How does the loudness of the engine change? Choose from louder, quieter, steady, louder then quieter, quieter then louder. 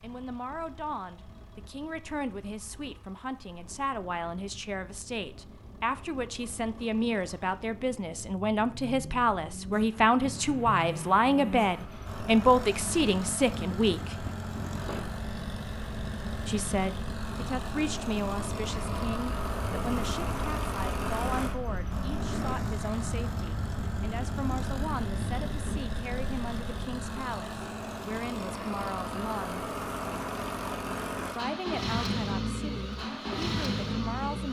louder.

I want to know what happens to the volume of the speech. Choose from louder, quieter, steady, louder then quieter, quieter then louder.
louder then quieter.